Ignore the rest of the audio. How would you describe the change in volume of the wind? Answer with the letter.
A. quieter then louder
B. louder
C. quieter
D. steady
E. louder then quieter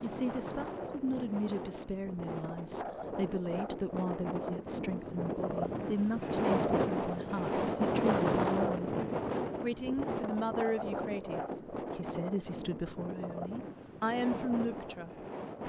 E.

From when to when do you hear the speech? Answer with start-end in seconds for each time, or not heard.
0.0-8.9, 9.6-15.1.